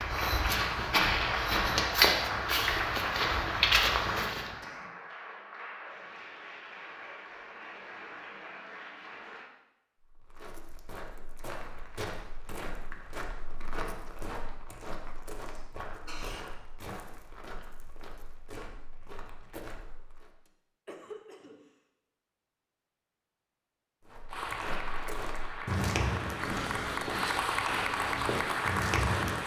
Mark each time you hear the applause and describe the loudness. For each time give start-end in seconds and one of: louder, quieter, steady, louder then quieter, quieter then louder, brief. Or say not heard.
0.0-9.5 quieter
24.3-29.4 louder.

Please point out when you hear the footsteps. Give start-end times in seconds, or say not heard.
0.0-4.5, 10.0-20.3, 24.1-29.4.